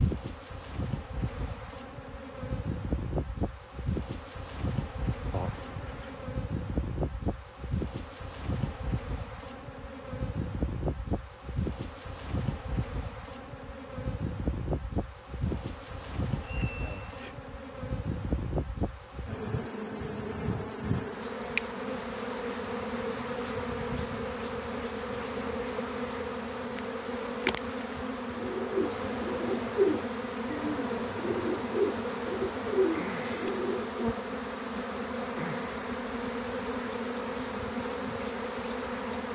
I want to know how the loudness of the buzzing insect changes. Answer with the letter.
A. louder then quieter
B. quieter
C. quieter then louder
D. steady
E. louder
D.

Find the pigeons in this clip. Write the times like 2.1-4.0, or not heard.
28.3-34.0.